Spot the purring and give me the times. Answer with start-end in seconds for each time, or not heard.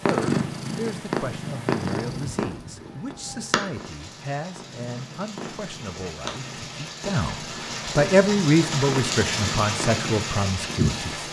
0.0-11.2.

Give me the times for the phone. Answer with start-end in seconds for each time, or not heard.
not heard.